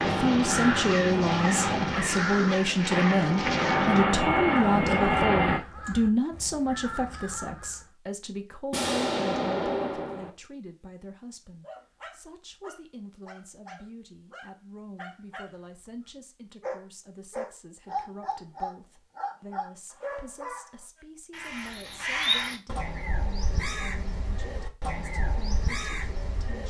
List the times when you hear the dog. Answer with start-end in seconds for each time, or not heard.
11.6-20.8.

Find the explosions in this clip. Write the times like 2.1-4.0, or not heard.
8.7-10.3.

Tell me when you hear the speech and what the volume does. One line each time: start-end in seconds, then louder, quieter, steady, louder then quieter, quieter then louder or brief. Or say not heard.
0.1-26.6 quieter.